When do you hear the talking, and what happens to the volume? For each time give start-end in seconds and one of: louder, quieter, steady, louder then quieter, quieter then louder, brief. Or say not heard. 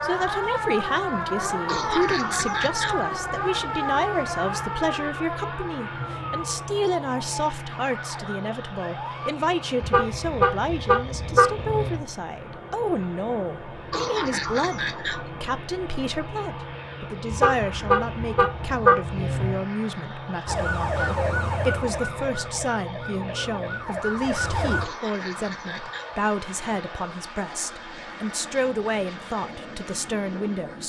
0.0-30.8 steady.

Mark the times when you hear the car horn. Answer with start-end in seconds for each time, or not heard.
9.8-12.1, 17.3-19.6.